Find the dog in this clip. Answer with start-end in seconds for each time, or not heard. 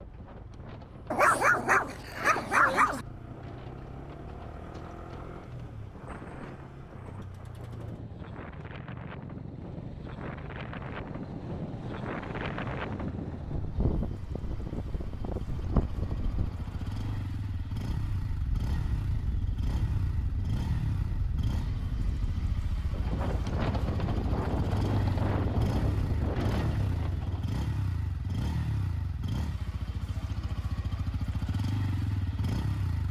1.1-3.0.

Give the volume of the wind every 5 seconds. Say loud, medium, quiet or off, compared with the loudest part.
quiet, medium, loud, loud, loud, loud, off.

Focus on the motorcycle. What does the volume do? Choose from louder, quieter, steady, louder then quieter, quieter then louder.
louder.